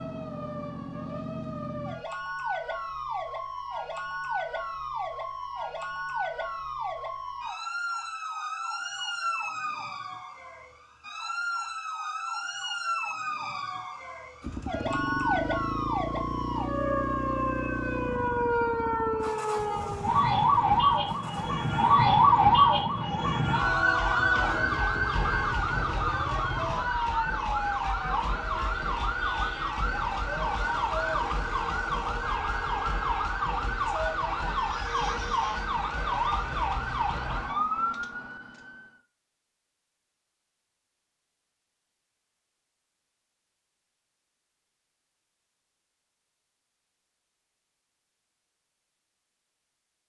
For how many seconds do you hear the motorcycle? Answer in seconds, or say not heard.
12 s.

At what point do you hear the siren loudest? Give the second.
22 s.